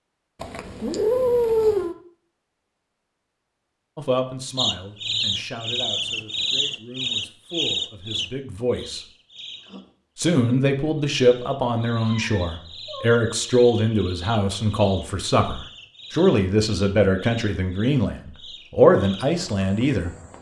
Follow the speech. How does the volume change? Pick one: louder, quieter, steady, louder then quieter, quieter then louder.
louder.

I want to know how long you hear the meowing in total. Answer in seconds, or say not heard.
3 s.